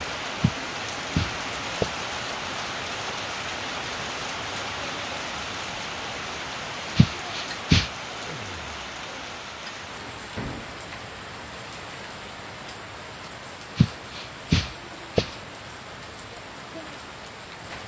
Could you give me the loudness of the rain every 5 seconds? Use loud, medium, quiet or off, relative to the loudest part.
loud, loud, medium, medium.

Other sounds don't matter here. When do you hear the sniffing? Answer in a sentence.
You can hear the sniffing from 0.4 to 2.0 s, from 7.0 to 7.9 s and from 13.8 to 15.3 s.